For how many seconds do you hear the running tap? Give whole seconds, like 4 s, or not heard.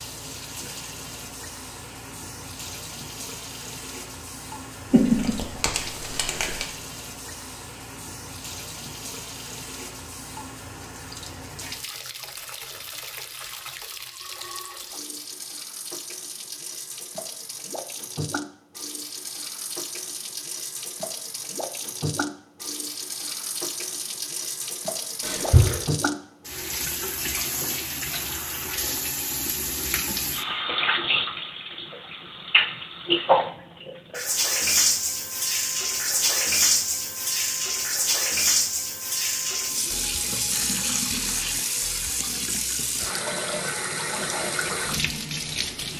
46 s.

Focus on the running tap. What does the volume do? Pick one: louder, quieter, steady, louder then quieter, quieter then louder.
louder.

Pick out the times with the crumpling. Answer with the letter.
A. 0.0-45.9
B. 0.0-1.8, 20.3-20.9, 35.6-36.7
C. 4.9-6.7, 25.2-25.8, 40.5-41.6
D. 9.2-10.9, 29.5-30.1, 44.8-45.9
C.